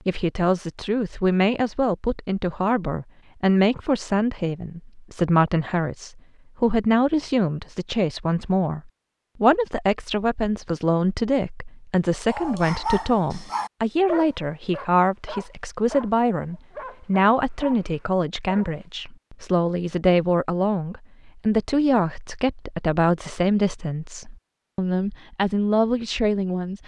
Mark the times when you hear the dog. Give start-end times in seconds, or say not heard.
12.2-18.8.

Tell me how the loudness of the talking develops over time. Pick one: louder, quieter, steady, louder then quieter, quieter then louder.
steady.